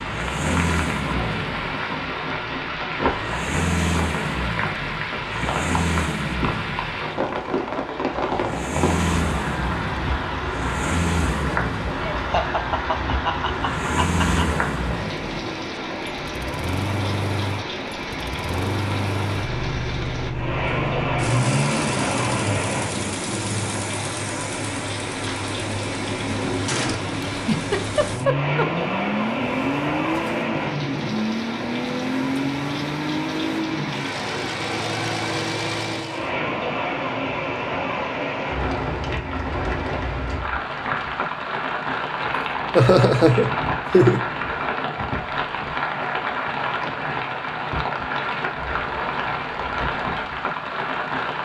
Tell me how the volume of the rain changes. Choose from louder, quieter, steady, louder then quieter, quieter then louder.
steady.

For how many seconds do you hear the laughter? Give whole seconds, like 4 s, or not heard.
5 s.